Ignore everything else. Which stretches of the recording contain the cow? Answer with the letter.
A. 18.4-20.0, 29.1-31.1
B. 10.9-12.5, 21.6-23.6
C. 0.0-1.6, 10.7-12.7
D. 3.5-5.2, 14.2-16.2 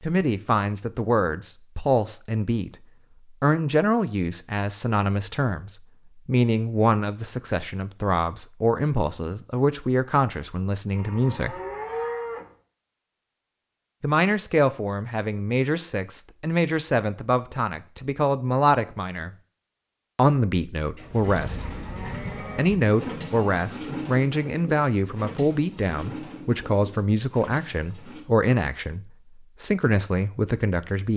B.